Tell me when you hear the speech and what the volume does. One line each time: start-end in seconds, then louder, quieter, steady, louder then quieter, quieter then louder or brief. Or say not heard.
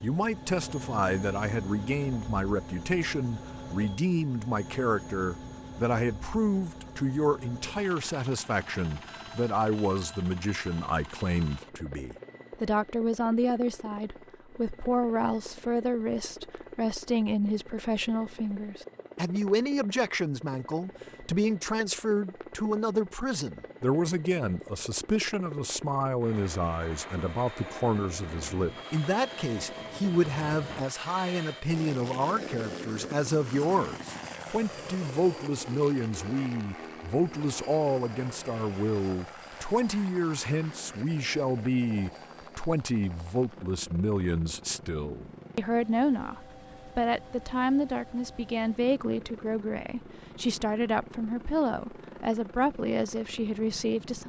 0.0-54.2 steady.